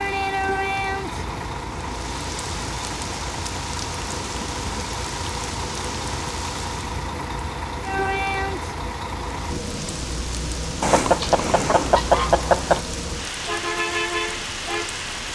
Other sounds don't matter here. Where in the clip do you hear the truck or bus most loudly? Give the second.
14 s.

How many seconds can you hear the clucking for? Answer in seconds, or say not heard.
2 s.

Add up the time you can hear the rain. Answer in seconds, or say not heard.
15 s.